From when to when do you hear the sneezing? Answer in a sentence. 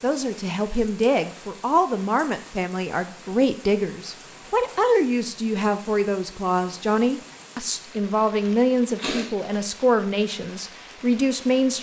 The sneezing can be heard from 8.9 to 9.3 s.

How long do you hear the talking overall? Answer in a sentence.
You can hear the talking for 12 seconds altogether.